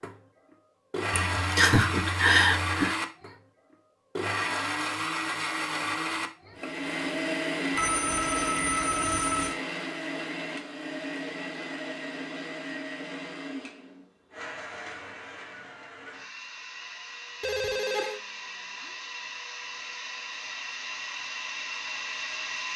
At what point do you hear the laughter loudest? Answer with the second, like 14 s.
2 s.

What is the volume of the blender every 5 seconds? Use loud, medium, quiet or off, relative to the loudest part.
loud, loud, medium, medium, medium.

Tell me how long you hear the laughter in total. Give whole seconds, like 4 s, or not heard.
2 s.